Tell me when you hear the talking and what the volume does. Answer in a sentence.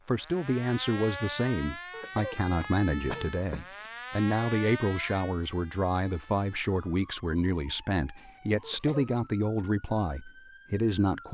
The talking can be heard from 0.1 to 11.2 s, at a steady volume.